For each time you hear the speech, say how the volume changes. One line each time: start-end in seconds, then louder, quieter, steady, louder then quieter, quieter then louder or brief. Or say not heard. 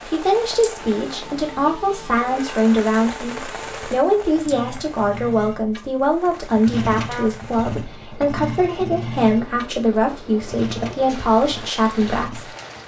0.0-12.5 steady.